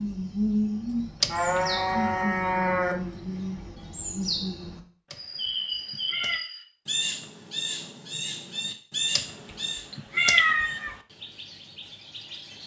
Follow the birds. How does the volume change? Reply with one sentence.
The loudness of the birds goes down.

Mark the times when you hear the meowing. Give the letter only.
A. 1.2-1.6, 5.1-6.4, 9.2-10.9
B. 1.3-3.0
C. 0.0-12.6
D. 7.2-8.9
A.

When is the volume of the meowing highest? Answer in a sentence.
The volume of the meowing peaks at 10 seconds.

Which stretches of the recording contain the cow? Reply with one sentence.
You can hear the cow from 1.3 to 3.0 s.